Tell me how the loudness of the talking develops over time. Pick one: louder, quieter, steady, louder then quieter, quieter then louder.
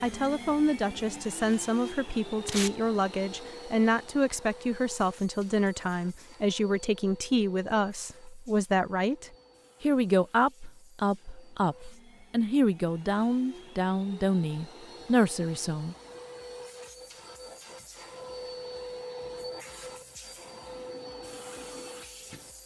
steady.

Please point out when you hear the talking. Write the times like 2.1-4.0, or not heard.
0.0-15.9.